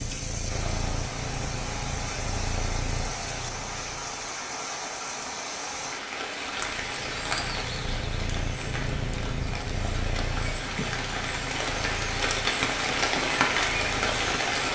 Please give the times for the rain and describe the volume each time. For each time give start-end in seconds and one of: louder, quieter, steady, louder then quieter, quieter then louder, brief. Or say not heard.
0.0-14.7 louder.